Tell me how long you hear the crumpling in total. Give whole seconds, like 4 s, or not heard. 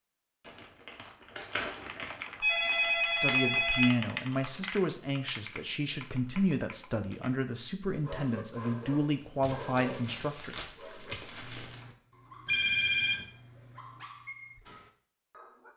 4 s.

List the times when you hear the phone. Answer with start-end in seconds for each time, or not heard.
2.4-3.9, 12.4-13.2.